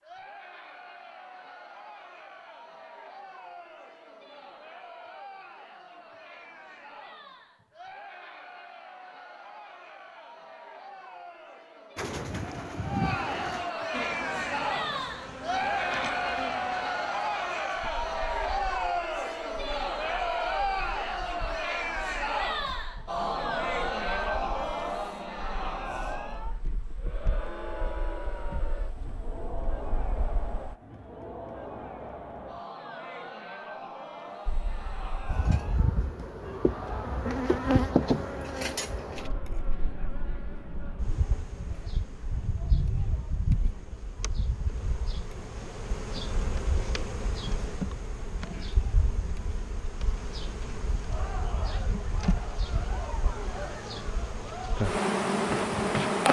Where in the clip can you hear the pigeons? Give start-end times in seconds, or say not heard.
11.9-13.7.